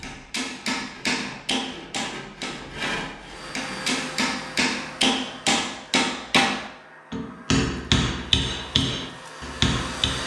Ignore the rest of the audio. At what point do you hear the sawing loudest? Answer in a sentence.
The loudest moment of the sawing is at 3 seconds.